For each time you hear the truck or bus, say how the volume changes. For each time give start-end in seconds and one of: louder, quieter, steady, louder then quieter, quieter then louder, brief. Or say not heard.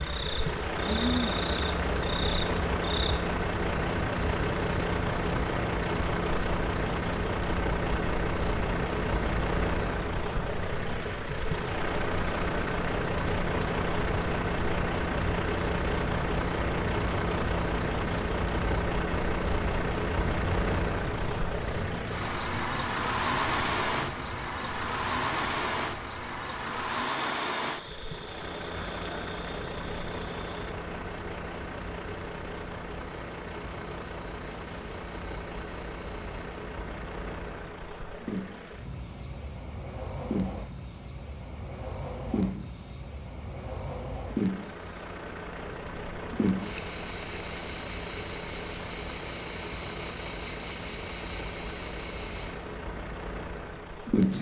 0.0-54.3 quieter.